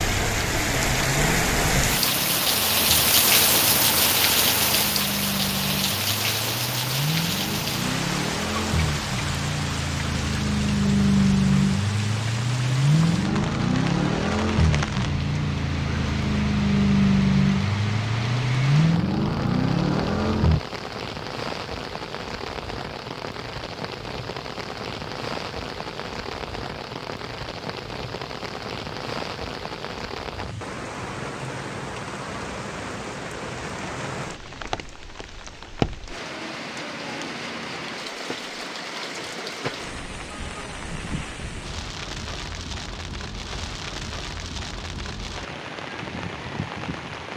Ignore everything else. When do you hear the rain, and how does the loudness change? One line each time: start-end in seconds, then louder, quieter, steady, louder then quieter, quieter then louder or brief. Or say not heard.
0.0-47.3 quieter.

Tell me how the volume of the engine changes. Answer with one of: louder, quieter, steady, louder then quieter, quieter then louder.
louder.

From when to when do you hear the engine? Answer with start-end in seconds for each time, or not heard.
0.2-20.6.